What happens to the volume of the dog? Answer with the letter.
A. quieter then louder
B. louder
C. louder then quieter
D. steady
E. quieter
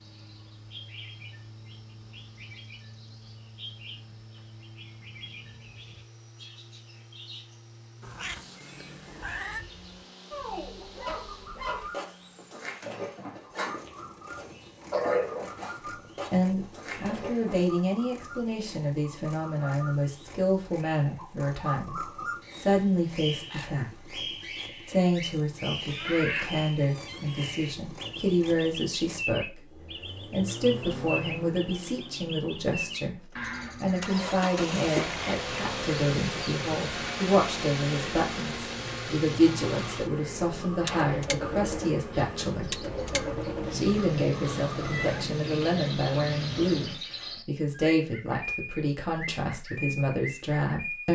C.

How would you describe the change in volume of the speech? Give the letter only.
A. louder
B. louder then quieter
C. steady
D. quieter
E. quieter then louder
C.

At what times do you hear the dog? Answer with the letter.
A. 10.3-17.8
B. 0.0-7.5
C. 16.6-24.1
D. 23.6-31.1
A.